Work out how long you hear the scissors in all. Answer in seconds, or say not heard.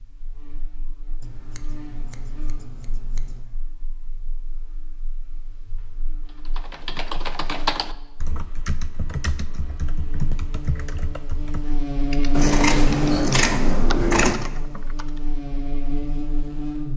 4 s.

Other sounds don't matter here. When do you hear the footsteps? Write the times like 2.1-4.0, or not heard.
not heard.